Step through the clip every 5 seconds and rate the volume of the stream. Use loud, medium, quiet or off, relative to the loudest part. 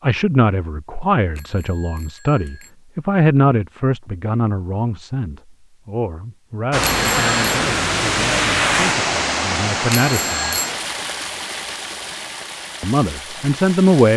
off, loud, medium.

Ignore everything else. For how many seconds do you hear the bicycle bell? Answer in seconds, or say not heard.
3 s.